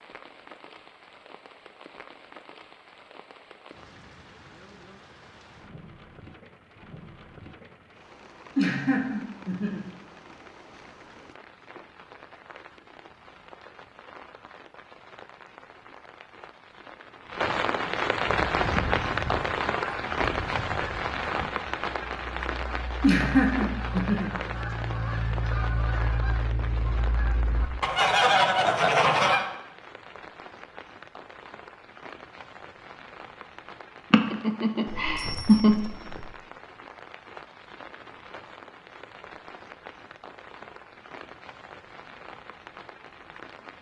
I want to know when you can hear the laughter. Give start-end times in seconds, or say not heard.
8.6-9.8, 23.0-24.3, 34.1-35.8.